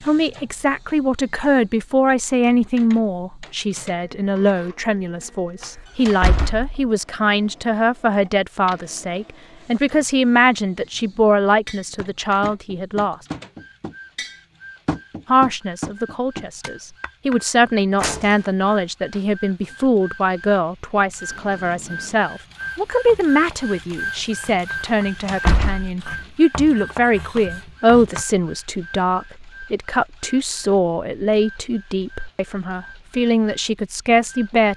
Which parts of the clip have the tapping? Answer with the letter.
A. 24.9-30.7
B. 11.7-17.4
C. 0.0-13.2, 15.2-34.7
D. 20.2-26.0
B.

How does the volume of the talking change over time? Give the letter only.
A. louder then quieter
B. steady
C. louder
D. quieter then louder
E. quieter
B.